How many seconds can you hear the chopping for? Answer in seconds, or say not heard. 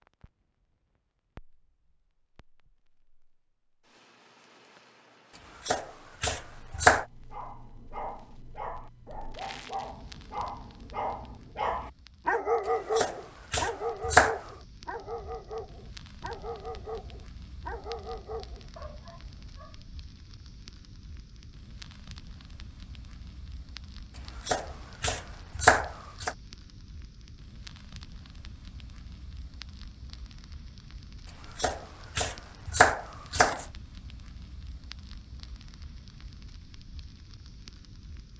7 s.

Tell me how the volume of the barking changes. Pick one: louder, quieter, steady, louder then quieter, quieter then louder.
louder then quieter.